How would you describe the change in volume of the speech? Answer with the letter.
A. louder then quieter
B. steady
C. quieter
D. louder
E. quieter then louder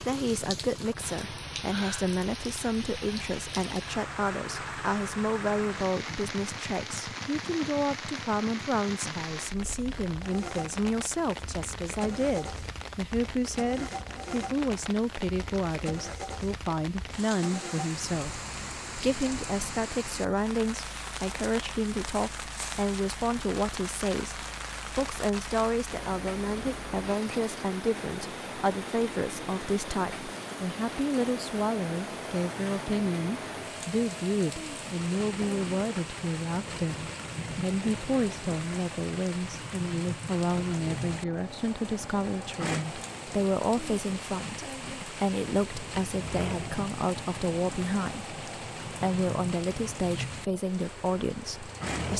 B.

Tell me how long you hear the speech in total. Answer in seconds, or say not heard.
52 s.